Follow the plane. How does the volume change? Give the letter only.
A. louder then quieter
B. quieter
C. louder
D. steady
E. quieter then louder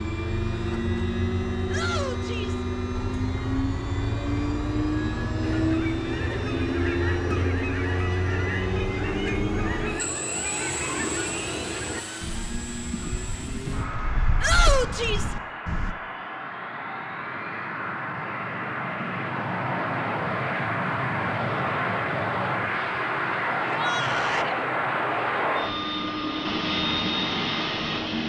E.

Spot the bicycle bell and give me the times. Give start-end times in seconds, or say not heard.
not heard.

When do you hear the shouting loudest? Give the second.
15 s.